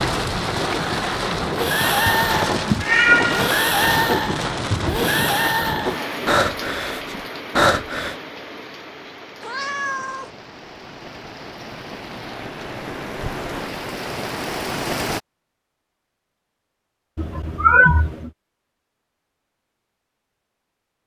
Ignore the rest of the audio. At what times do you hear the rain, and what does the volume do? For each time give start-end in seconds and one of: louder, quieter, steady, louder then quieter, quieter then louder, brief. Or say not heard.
0.0-15.2 quieter then louder.